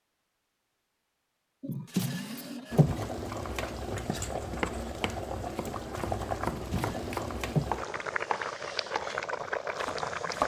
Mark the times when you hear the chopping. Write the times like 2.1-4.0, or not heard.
3.5-10.4.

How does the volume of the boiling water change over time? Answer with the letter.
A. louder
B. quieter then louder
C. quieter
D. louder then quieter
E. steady
E.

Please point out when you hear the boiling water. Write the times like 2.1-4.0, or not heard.
2.7-10.4.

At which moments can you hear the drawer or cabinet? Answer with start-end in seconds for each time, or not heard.
1.6-3.0, 6.5-7.7.